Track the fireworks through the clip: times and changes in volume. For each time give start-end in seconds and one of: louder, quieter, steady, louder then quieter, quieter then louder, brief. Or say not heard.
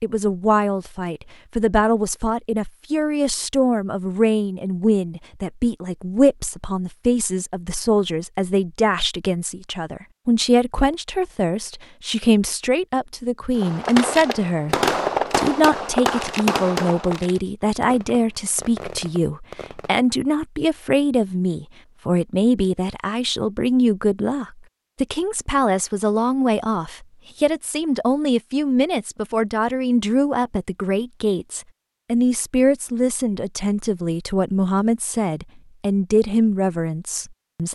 13.6-20.0 quieter then louder.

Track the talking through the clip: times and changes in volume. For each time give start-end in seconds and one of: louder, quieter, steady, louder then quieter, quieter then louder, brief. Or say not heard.
0.0-37.6 steady.